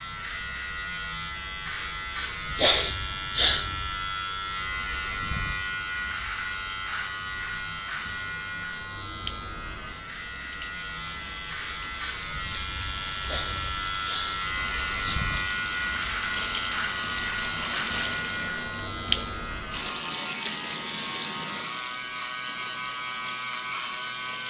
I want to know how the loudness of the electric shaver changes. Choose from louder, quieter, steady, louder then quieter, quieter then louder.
steady.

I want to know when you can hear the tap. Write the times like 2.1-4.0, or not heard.
4.7-24.4.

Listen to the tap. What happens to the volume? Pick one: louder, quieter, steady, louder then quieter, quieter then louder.
louder then quieter.